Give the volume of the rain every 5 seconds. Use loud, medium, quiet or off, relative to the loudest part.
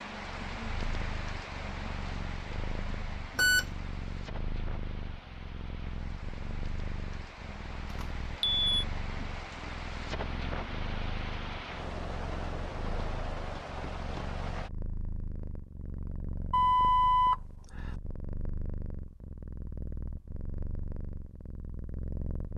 loud, medium, loud, off, off.